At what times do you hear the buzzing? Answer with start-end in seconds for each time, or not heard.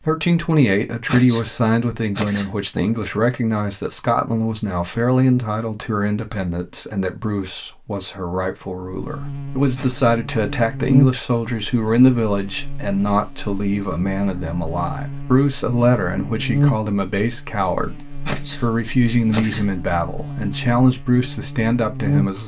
8.8-22.4.